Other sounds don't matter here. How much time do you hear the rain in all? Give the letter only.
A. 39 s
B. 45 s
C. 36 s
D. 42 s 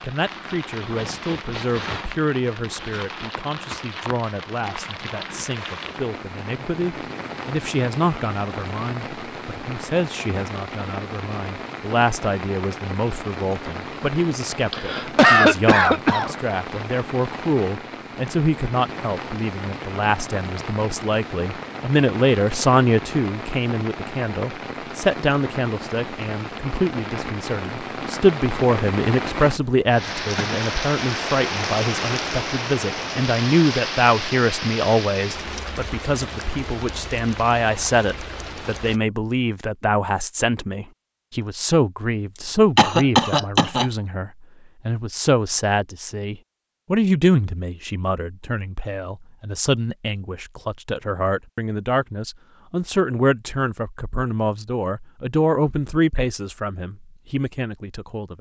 A.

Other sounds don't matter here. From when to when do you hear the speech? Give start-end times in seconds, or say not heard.
0.0-58.3.